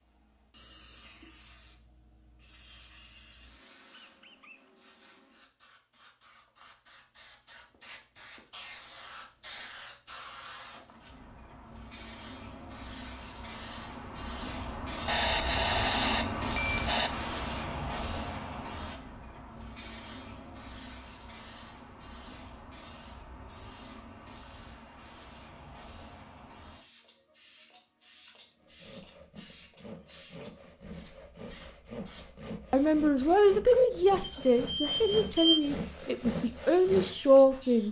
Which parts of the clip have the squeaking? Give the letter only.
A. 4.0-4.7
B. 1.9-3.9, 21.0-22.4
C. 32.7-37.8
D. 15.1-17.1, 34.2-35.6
A.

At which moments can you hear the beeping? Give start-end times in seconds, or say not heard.
15.1-17.1, 34.2-35.6.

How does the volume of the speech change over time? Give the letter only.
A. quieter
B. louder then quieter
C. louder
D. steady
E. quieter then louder
E.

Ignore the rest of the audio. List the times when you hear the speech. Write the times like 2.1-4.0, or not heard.
32.7-37.8.